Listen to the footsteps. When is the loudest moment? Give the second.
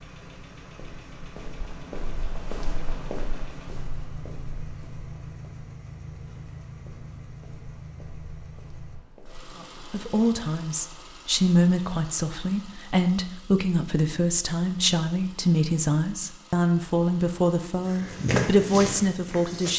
18 s.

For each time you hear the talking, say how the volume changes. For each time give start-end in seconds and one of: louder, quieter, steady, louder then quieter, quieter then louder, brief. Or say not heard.
9.6-19.7 steady.